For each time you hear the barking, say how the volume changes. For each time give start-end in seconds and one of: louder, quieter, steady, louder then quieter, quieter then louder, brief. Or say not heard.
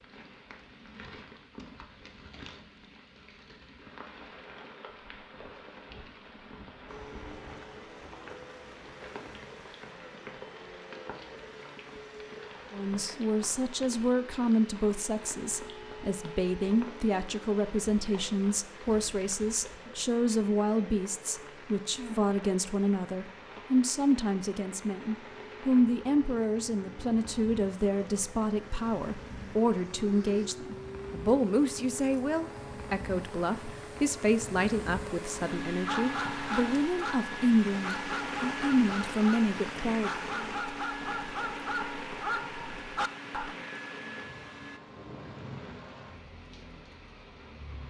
35.7-43.5 steady.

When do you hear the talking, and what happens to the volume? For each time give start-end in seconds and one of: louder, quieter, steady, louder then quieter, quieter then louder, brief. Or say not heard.
12.7-40.2 steady.